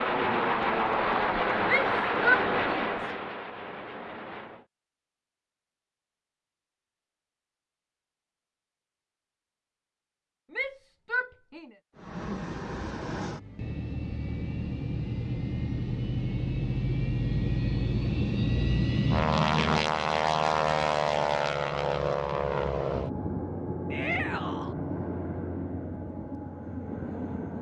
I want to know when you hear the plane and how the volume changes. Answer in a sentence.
The plane can be heard from 0.0 to 4.7 s, getting quieter; and from 11.9 to 27.5 s, getting louder then quieter.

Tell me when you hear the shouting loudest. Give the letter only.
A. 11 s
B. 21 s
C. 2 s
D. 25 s
C.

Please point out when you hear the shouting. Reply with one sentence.
You can hear the shouting from 1.6 to 3.1 s, from 10.5 to 11.7 s and from 23.9 to 24.8 s.